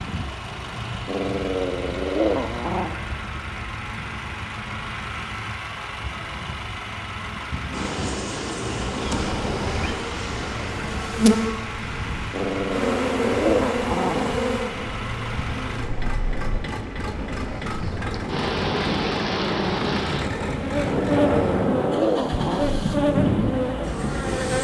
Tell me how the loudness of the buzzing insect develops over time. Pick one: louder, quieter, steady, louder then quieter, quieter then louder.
quieter then louder.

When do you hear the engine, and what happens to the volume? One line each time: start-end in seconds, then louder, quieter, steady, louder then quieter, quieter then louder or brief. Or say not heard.
0.0-24.6 steady.